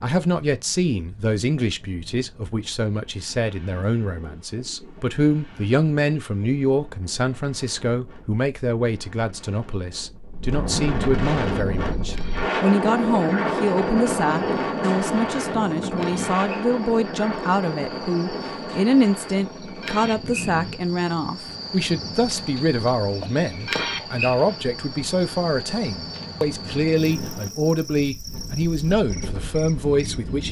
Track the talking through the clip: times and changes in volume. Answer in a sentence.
The talking can be heard from 0.0 to 30.4 s, at a steady volume.